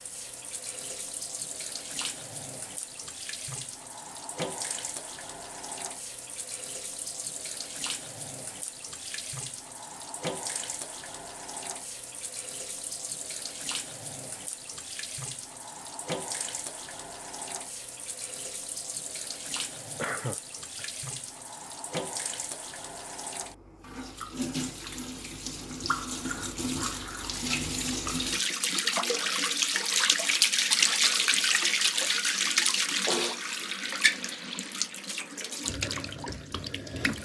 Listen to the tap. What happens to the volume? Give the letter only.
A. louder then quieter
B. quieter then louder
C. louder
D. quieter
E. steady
C.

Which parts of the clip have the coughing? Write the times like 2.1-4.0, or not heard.
19.9-20.9.